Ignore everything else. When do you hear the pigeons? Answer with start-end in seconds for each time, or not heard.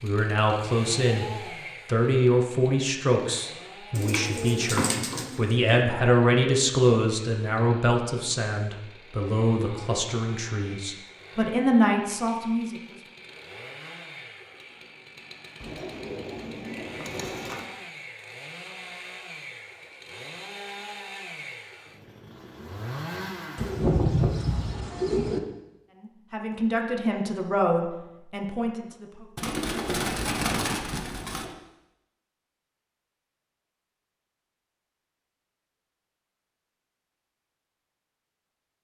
3.9-5.8, 15.6-17.7, 23.6-25.4, 29.4-31.6.